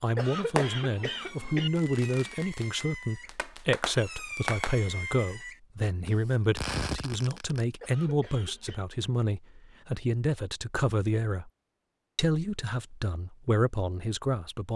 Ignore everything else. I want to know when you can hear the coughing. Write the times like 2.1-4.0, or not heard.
0.1-1.7, 7.8-8.8.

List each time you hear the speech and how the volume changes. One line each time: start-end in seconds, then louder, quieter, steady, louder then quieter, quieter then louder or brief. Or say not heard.
0.0-11.5 steady
12.2-14.7 brief.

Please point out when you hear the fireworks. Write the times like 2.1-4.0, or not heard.
0.6-7.7.